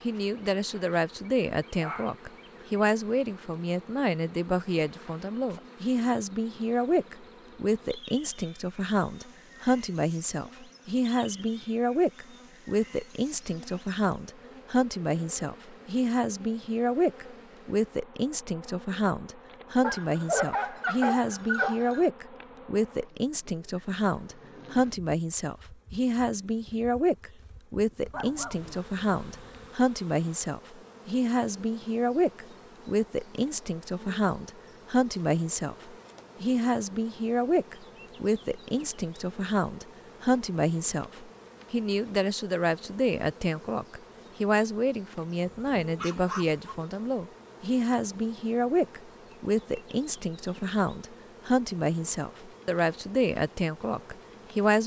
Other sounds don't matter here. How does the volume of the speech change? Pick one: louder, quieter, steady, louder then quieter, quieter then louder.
steady.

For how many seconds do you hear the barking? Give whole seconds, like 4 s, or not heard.
6 s.